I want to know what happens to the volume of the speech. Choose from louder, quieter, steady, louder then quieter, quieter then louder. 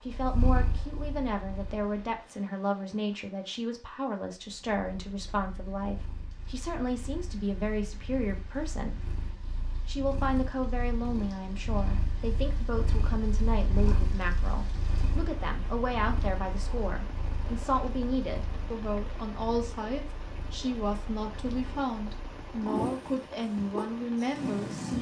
steady.